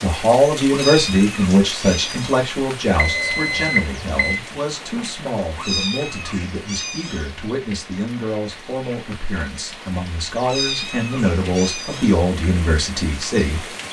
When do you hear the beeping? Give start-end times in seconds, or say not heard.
3.0-4.4.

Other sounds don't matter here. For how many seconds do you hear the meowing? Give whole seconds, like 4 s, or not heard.
5 s.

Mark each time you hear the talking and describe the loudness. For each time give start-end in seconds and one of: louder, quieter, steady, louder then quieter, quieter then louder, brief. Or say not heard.
0.0-13.7 quieter then louder.